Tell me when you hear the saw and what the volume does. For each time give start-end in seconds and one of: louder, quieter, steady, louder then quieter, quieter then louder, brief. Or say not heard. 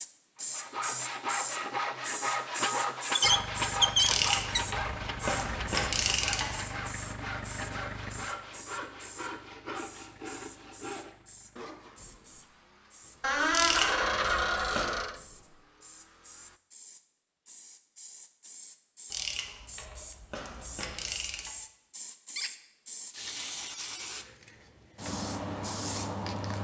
0.3-11.9 quieter.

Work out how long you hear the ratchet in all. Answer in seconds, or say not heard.
6 s.